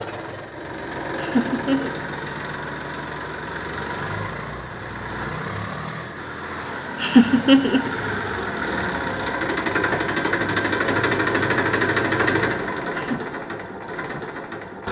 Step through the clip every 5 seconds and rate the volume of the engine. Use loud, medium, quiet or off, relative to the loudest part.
medium, loud, loud.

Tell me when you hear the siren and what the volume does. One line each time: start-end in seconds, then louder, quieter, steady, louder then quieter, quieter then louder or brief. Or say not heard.
not heard.